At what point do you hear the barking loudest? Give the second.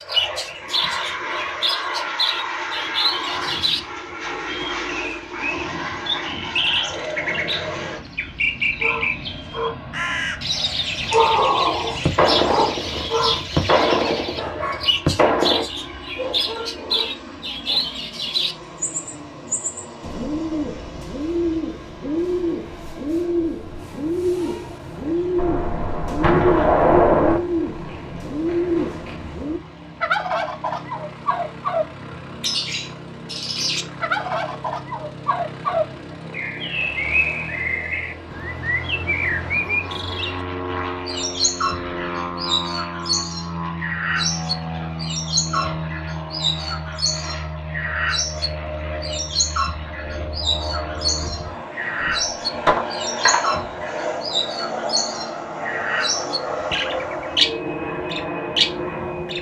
11 s.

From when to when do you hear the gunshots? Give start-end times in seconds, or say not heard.
12.1-15.7, 25.4-27.4, 52.0-53.5.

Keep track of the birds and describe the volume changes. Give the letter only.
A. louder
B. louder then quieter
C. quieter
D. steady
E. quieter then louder
D.